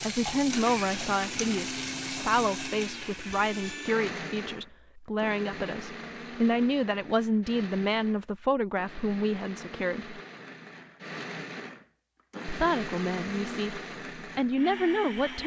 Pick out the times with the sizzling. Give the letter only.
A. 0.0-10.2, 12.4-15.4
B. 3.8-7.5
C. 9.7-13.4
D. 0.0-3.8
D.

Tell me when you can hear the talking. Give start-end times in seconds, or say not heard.
0.0-10.2, 12.4-15.4.